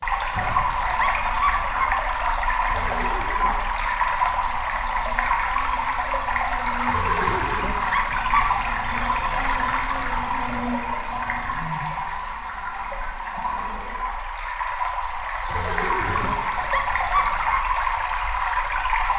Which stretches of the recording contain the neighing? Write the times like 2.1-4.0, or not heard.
2.6-3.5, 6.8-7.8, 15.2-16.4.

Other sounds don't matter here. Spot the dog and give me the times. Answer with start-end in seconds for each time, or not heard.
0.3-1.9, 7.2-8.8, 16.1-17.6.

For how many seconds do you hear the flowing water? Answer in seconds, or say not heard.
19 s.